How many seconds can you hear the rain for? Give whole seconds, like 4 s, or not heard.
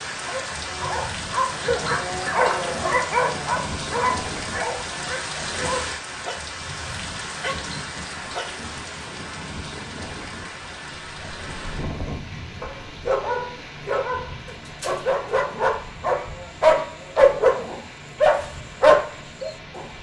20 s.